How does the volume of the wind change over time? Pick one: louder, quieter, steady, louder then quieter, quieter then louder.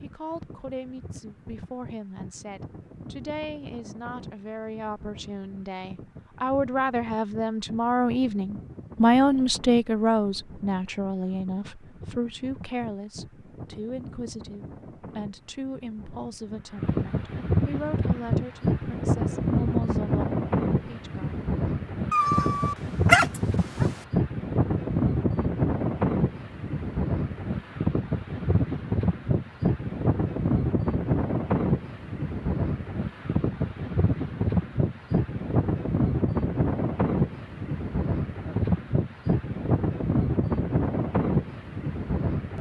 louder.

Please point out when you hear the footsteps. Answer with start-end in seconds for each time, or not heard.
not heard.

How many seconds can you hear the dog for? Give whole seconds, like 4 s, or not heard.
2 s.